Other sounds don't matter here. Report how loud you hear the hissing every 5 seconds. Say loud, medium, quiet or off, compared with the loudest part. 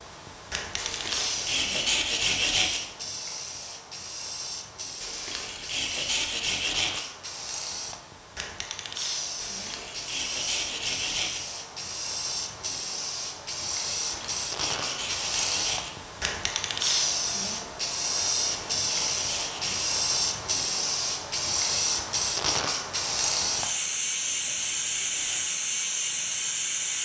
medium, medium, medium, loud, loud, loud.